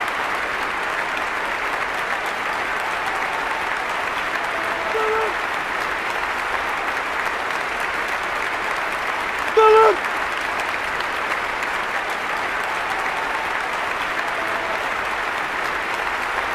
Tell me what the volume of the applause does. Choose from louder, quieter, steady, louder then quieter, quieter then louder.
steady.